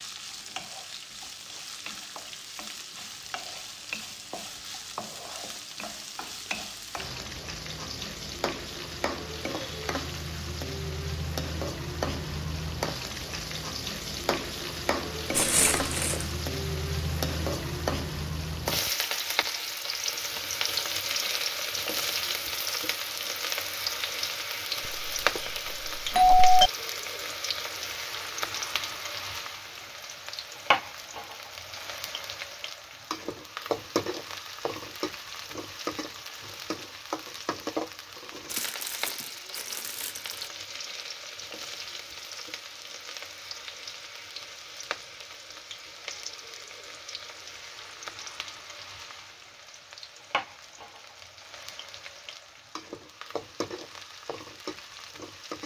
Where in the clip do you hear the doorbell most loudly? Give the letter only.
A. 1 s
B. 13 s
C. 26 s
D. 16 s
C.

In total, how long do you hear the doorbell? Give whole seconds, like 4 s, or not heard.
2 s.